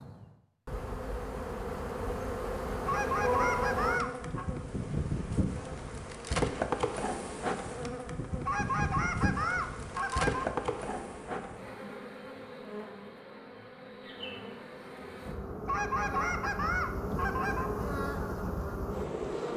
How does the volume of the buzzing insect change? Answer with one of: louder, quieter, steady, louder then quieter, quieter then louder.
quieter then louder.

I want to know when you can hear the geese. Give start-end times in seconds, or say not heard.
2.9-4.5, 8.4-10.4, 15.7-17.7.